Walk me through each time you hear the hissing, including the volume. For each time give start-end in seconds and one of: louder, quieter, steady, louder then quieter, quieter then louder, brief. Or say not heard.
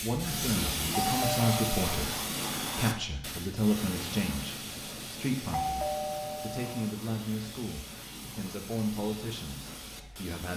0.0-10.5 quieter.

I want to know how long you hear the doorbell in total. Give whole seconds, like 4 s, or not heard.
2 s.